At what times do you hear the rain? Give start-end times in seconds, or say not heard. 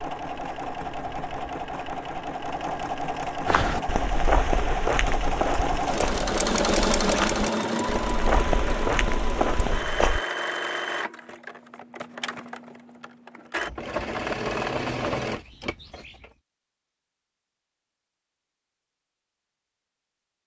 not heard.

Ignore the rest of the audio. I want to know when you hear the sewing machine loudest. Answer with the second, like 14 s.
7 s.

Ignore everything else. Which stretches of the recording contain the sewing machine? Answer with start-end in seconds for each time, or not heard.
0.0-16.3.